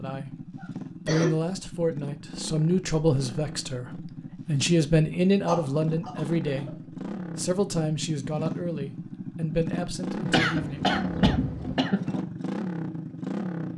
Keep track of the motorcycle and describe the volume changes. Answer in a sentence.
The volume of the motorcycle goes up.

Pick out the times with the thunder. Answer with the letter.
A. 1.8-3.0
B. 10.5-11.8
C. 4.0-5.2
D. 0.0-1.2
B.